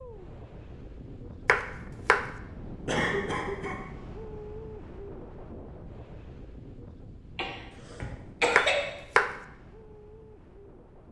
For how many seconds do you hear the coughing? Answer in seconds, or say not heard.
2 s.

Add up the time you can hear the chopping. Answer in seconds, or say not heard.
2 s.